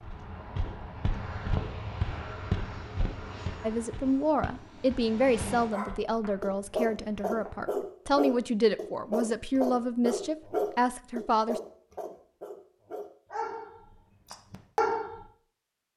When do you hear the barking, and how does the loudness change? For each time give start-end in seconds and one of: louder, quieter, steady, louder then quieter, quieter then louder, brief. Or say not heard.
5.7-15.2 quieter then louder.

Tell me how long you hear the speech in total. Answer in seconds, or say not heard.
8 s.